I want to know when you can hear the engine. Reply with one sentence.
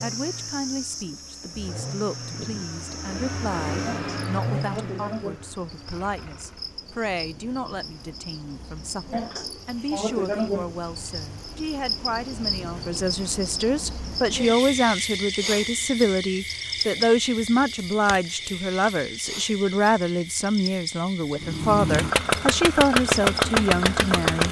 You can hear the engine from 0.0 to 6.8 s and from 21.4 to 24.4 s.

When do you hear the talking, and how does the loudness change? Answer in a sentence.
The talking can be heard from 0.0 to 24.4 s, getting louder.